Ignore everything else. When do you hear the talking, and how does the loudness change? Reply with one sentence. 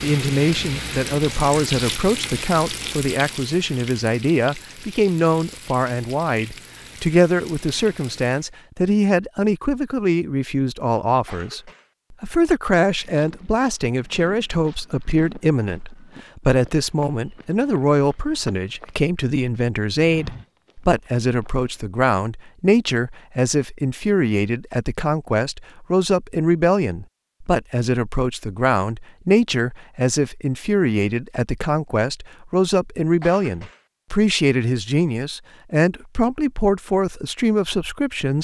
You can hear the talking from 0.0 to 38.3 s, at a steady volume.